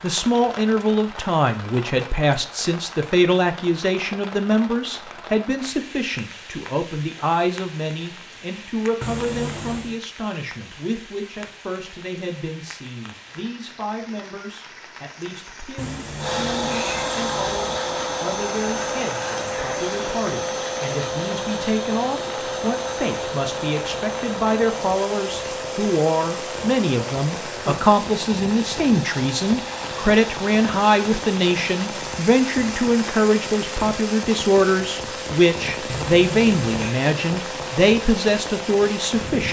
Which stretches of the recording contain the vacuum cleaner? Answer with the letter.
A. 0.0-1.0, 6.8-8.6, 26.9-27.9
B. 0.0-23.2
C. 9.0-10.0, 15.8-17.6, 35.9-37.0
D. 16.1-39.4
D.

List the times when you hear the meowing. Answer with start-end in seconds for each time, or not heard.
9.0-10.0, 15.8-17.6, 35.9-37.0.